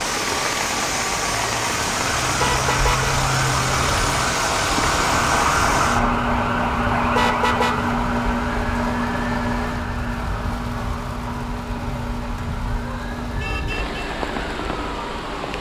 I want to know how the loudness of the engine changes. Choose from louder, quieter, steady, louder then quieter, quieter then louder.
quieter.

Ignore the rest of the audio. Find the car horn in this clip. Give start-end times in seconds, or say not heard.
2.4-3.1, 7.2-7.8, 12.8-14.0.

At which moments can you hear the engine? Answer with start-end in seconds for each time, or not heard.
0.0-15.5.